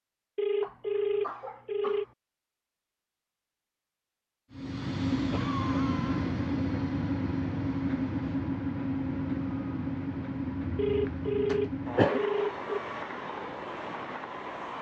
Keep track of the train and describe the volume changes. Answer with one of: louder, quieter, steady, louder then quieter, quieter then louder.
quieter.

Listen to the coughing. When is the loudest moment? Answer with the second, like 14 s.
12 s.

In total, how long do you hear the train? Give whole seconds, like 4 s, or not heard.
10 s.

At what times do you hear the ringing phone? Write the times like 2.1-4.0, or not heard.
0.3-2.0, 10.8-12.6.